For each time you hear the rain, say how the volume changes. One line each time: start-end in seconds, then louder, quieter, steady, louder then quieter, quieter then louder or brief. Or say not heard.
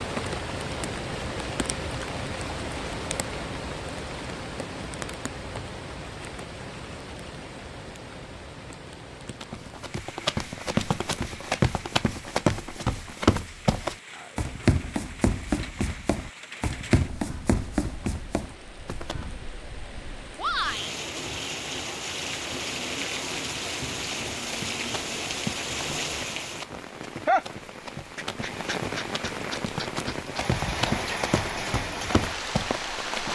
0.0-33.3 quieter then louder.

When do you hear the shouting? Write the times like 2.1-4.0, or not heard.
20.4-20.9.